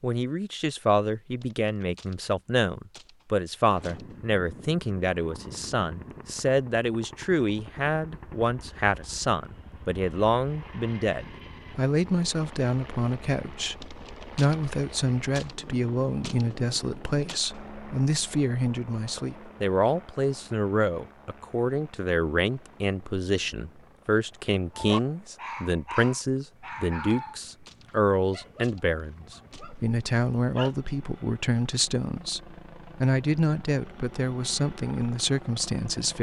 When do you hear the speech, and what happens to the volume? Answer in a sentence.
The speech can be heard from 0.0 to 36.1 s, at a steady volume.